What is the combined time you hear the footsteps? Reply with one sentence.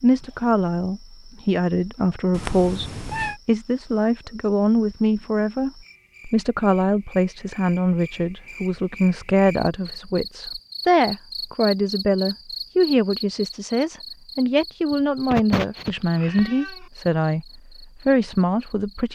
You can't hear the footsteps here.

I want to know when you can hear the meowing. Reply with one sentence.
The meowing can be heard from 2.3 to 3.4 s and from 14.9 to 16.9 s.